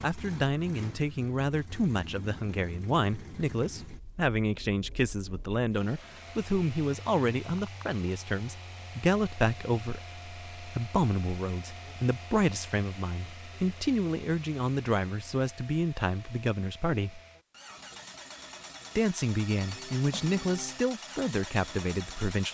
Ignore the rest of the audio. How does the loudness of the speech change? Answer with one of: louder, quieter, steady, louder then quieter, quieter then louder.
steady.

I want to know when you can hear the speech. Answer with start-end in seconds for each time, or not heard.
0.0-17.2, 18.9-22.4.